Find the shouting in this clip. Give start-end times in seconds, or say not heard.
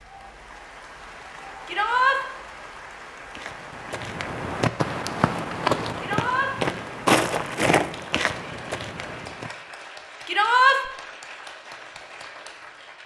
1.6-2.2, 6.0-6.5, 10.2-10.8.